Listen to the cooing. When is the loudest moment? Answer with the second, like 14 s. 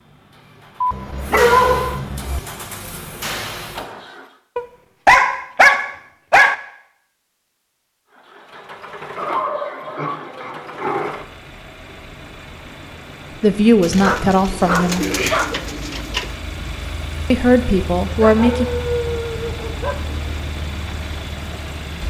15 s.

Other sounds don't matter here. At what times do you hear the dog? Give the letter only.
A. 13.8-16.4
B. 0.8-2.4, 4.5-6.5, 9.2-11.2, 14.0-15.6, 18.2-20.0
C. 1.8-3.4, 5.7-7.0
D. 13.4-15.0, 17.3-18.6
B.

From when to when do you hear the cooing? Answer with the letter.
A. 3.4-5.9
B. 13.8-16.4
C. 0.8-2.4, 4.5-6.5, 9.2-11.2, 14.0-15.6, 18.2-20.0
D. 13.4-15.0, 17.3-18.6
B.